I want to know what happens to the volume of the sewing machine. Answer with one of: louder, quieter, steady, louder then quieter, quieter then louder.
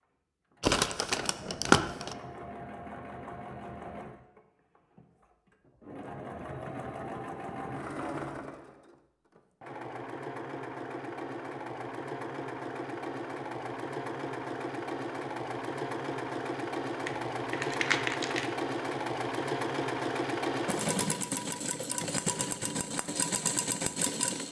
louder.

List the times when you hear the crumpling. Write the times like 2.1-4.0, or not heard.
0.6-2.1, 17.1-18.6.